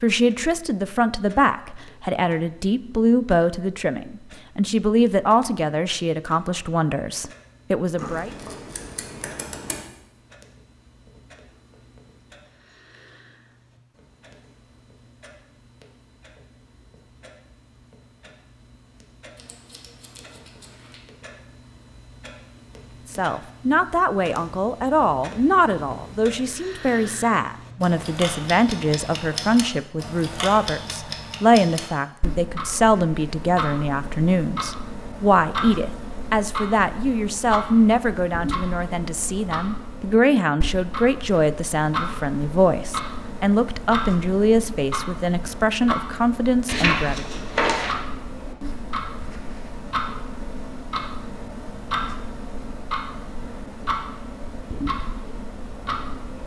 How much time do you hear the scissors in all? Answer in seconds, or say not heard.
5 s.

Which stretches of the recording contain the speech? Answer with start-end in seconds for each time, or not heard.
0.0-8.3, 23.1-47.2.